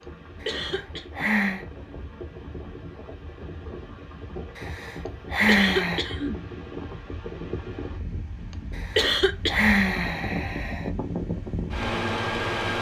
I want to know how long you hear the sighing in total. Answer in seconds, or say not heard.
5 s.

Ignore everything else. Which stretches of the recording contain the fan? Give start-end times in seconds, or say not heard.
0.0-12.7.